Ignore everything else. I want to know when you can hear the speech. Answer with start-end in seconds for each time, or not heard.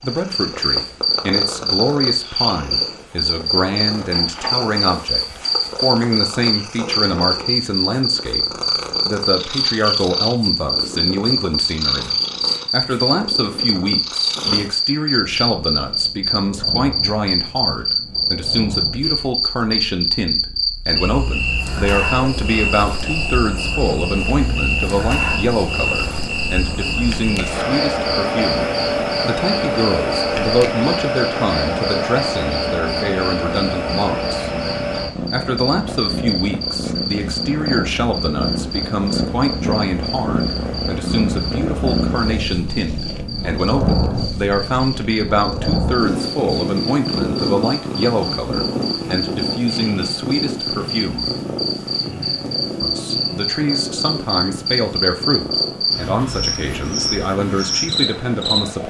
0.0-34.5, 35.3-51.3, 52.8-58.8.